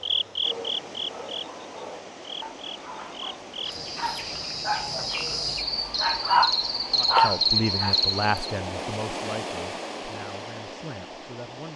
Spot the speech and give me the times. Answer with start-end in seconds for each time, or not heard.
7.0-11.7.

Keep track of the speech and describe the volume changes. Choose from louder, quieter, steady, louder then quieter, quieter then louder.
quieter.